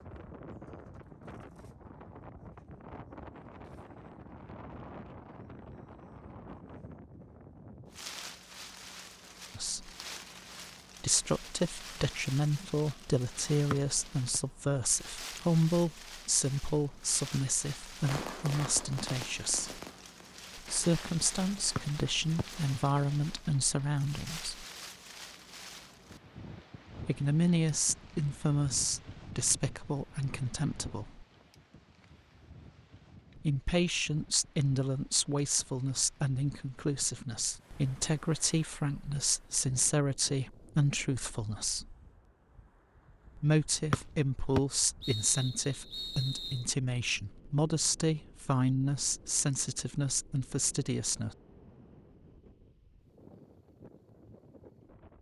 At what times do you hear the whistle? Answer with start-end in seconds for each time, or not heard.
13.7-14.4, 21.8-22.4, 43.9-46.6.